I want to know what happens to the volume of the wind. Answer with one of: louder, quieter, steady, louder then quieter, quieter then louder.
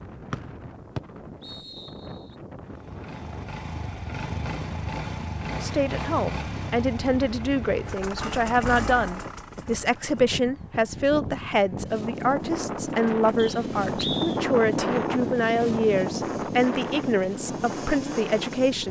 louder.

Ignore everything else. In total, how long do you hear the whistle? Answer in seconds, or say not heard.
3 s.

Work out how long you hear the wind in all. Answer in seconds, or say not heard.
19 s.